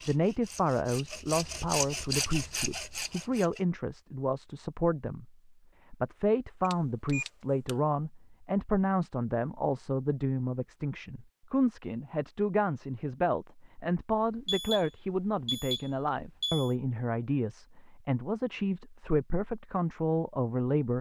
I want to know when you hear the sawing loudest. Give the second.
2 s.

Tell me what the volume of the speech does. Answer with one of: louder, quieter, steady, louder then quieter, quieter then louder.
steady.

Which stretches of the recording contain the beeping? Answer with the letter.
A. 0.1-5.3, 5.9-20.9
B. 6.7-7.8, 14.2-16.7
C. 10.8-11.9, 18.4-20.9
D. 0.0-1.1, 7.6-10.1
B.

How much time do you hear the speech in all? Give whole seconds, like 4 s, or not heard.
20 s.